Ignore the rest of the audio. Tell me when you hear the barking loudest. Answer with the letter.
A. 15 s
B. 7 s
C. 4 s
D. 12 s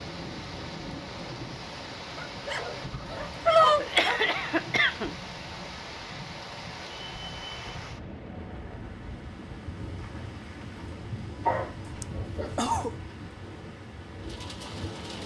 C.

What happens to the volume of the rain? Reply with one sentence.
The volume of the rain stays about the same.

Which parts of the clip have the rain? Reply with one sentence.
The rain can be heard from 0.0 to 15.2 s.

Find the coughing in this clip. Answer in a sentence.
The coughing can be heard from 3.8 to 5.2 s and from 12.0 to 13.0 s.